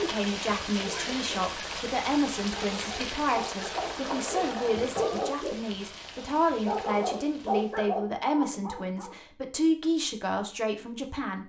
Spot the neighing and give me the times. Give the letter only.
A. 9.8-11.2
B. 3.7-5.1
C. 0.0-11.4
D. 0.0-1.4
B.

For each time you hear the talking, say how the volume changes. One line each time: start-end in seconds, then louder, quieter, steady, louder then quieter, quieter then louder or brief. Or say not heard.
0.0-11.4 steady.